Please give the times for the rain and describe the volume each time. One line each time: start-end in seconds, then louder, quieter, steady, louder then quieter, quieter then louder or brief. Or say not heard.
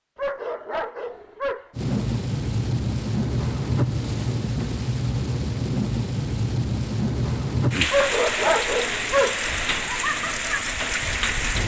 1.8-11.6 steady.